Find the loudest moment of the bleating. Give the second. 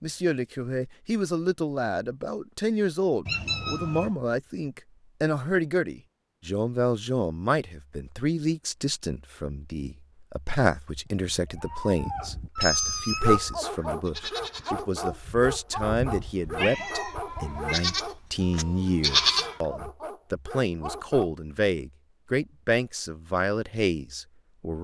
19 s.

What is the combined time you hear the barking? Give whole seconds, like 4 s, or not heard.
8 s.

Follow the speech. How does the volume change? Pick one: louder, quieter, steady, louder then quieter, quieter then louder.
steady.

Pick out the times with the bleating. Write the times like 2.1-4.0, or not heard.
10.9-19.6.